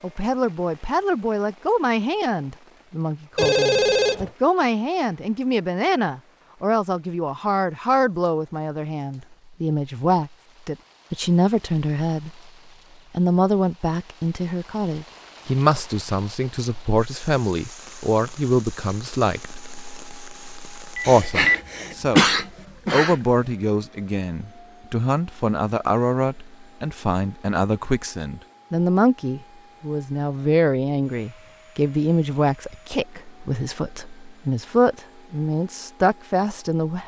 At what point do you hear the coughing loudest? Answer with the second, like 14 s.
22 s.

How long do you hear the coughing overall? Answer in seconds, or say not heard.
2 s.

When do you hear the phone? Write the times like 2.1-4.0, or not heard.
3.4-4.3, 20.9-21.6.